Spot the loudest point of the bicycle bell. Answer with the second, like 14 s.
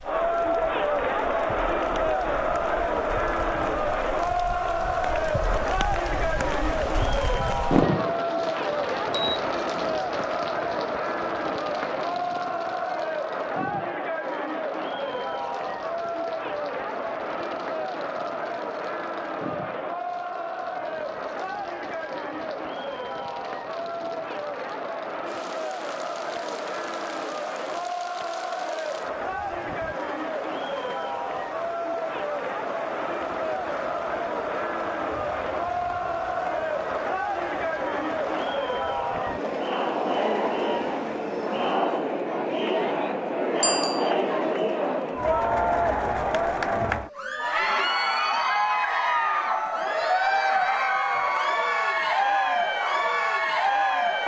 44 s.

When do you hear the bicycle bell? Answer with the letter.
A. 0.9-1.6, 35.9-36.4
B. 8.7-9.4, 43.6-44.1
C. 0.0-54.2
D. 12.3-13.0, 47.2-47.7
B.